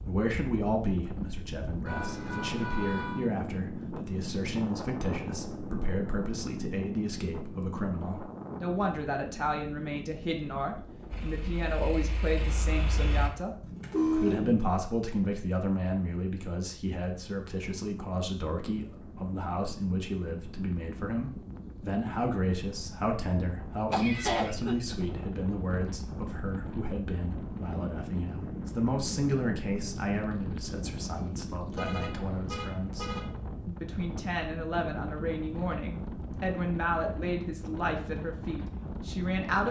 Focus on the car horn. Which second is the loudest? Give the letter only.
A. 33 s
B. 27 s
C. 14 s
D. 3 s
C.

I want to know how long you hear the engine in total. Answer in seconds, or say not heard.
2 s.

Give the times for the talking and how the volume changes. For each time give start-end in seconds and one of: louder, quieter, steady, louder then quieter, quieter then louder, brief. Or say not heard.
0.0-39.6 steady.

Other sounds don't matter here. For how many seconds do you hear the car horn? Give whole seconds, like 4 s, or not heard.
4 s.